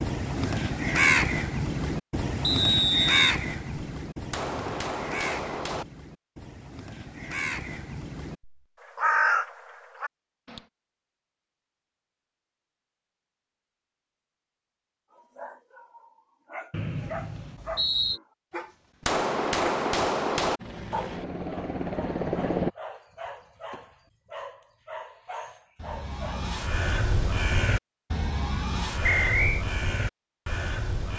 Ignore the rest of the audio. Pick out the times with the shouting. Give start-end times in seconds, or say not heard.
not heard.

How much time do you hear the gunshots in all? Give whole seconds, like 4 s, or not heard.
3 s.